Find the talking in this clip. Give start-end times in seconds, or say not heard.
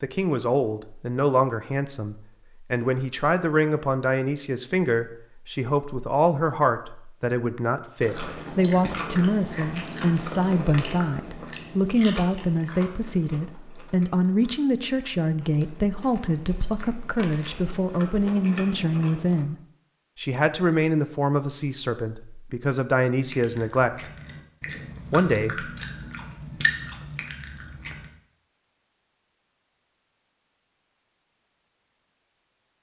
0.0-19.6, 20.1-24.1, 25.1-25.6.